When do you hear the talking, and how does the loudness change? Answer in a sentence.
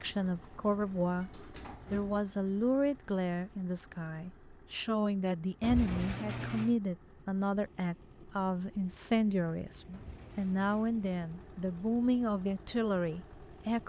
You can hear the talking from 0.0 to 13.8 s, at a steady volume.